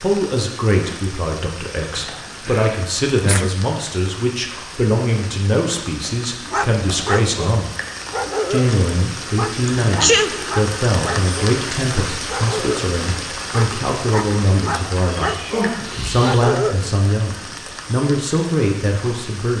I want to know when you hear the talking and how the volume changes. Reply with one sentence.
The talking can be heard from 0.0 to 7.8 s, at a steady volume; and from 8.5 to 19.5 s, at a steady volume.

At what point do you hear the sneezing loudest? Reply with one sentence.
The loudest moment of the sneezing is at 10 seconds.